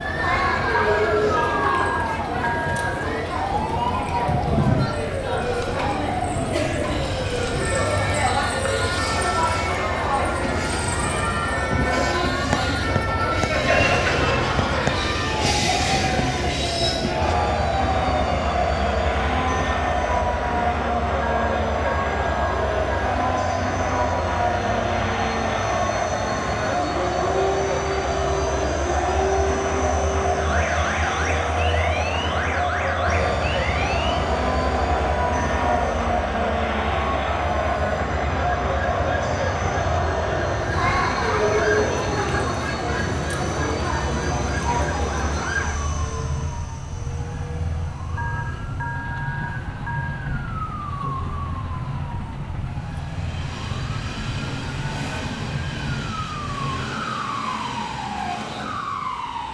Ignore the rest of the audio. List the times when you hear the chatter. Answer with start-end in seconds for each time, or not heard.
0.0-45.6.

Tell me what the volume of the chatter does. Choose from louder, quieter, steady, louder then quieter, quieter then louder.
steady.